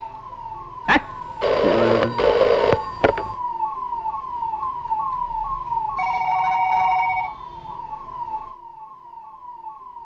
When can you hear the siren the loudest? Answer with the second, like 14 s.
5 s.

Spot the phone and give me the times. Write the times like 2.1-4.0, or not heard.
0.8-3.2, 6.0-7.3.